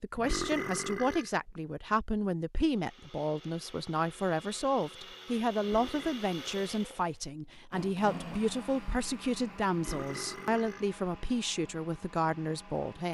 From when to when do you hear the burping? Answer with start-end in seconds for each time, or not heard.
0.1-1.6, 5.6-6.2, 9.8-10.9.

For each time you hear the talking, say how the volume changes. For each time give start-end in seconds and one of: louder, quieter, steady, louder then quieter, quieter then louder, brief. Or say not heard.
0.0-13.0 steady.